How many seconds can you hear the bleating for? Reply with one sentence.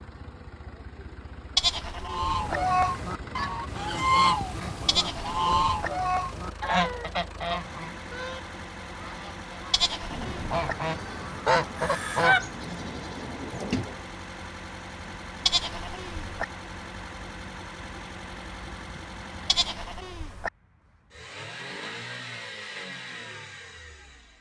You can hear the bleating for 5 seconds altogether.